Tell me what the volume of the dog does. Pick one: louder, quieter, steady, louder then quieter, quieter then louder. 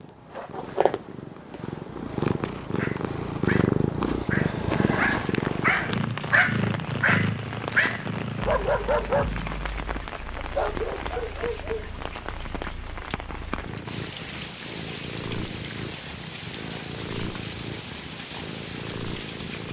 louder then quieter.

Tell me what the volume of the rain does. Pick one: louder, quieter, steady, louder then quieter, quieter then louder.
steady.